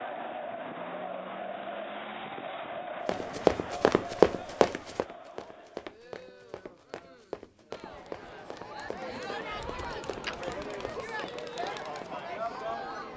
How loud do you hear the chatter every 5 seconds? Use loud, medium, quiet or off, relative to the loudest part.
loud, medium, loud.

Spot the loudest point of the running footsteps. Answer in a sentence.
The volume of the running footsteps peaks at 4 seconds.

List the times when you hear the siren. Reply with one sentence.
You can't hear the siren here.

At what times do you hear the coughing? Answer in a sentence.
The coughing can be heard from 9.8 to 10.4 s.